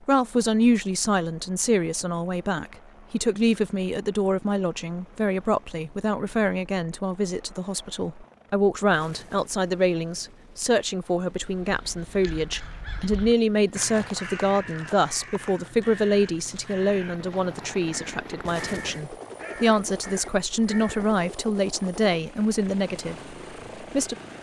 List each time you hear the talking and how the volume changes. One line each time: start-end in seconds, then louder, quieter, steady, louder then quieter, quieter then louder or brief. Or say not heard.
0.1-24.1 steady.